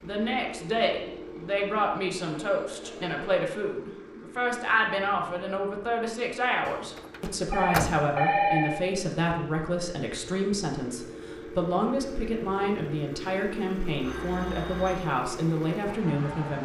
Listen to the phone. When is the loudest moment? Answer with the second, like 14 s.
8 s.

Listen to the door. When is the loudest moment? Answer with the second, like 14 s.
8 s.